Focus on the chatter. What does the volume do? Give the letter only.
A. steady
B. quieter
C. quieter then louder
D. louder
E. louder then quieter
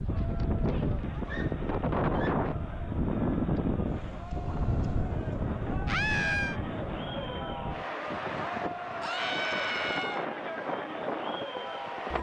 D.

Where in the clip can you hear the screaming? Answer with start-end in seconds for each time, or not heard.
1.1-2.4, 5.8-6.6, 9.0-10.2.